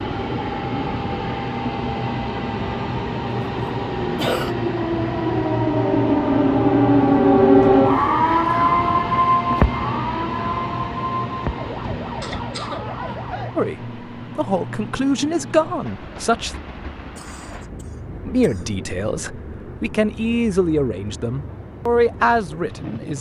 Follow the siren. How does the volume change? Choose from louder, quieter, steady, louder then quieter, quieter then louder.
louder then quieter.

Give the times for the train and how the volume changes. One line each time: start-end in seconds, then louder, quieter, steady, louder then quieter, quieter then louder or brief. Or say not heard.
0.0-23.1 quieter.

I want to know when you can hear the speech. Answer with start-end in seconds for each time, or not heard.
13.6-16.6, 18.2-23.1.